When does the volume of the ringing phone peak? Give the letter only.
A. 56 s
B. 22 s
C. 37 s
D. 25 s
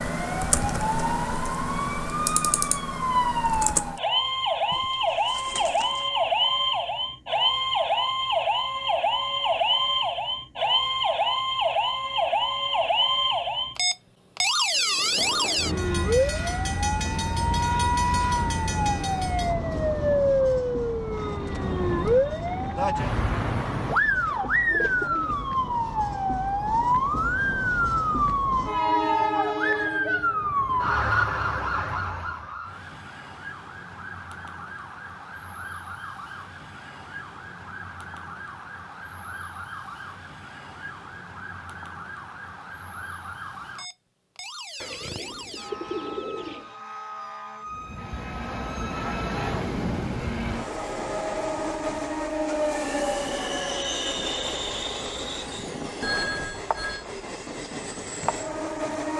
A.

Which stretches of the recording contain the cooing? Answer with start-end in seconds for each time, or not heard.
4.7-6.0, 23.8-25.4, 44.8-46.8.